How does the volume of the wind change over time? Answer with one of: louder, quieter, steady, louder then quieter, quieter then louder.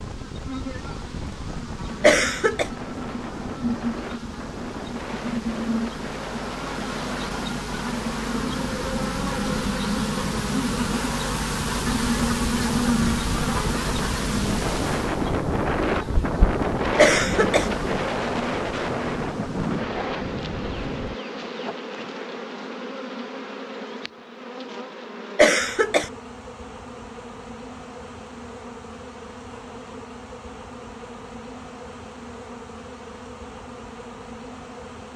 louder.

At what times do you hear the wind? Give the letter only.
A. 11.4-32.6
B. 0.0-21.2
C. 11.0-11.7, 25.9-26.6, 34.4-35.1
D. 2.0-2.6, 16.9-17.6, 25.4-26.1
B.